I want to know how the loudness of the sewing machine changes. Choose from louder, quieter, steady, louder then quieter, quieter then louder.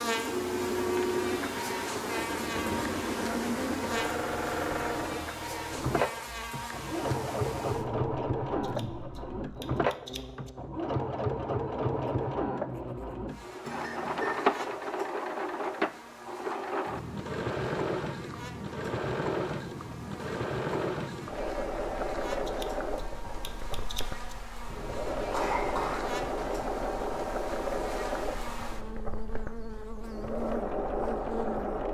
steady.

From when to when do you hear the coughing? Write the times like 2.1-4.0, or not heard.
13.7-14.3, 24.6-26.1.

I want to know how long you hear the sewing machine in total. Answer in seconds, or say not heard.
32 s.